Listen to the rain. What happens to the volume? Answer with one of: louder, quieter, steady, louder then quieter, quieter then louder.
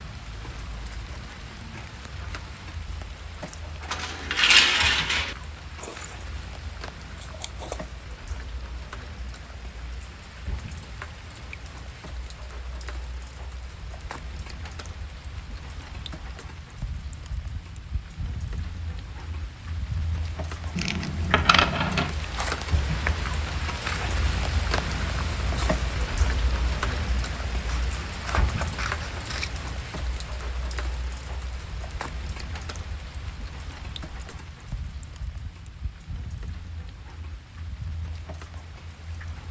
louder then quieter.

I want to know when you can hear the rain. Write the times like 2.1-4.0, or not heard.
0.0-39.4.